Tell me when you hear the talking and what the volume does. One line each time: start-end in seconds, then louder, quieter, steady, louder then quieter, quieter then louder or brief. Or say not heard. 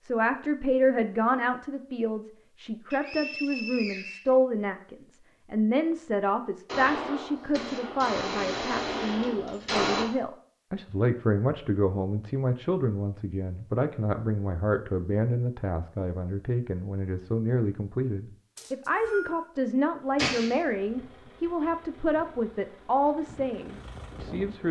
0.0-24.6 steady.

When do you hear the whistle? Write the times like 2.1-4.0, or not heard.
2.9-4.3, 18.6-19.4.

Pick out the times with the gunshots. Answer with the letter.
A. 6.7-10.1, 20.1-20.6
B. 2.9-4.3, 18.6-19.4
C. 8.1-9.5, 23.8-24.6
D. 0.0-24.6
A.